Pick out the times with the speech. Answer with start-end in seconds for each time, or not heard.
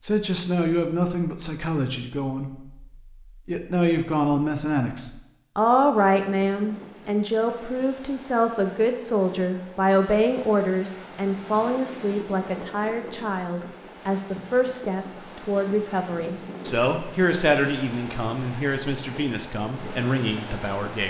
0.0-2.9, 3.5-21.0.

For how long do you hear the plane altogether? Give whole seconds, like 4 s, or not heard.
not heard.